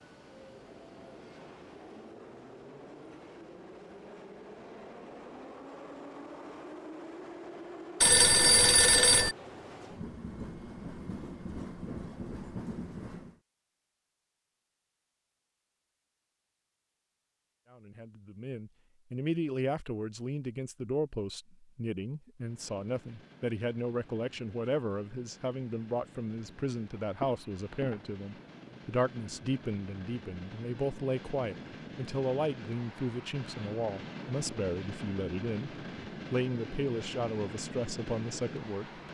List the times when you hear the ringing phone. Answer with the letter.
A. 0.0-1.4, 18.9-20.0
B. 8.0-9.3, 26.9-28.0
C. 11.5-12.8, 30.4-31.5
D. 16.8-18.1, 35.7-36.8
B.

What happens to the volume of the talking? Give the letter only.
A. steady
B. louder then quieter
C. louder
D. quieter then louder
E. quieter
A.